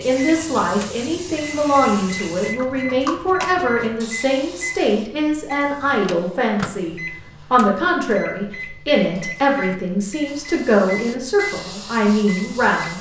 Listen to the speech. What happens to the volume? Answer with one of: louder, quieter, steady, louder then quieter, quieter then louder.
steady.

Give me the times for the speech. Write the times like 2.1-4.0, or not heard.
0.0-12.9.